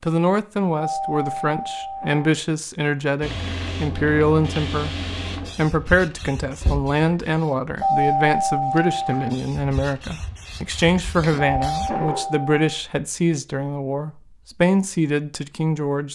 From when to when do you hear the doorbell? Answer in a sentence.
The doorbell can be heard from 0.8 to 2.2 s, from 7.8 to 9.3 s and from 11.6 to 12.6 s.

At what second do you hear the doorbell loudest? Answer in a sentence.
The loudest moment of the doorbell is at 8 seconds.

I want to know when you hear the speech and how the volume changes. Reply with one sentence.
You can hear the speech from 0.0 to 16.1 s, at a steady volume.